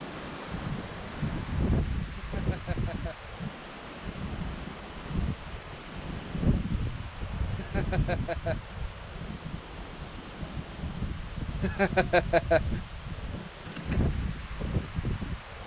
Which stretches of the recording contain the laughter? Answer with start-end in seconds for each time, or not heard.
2.1-3.4, 7.5-8.8, 11.6-12.8.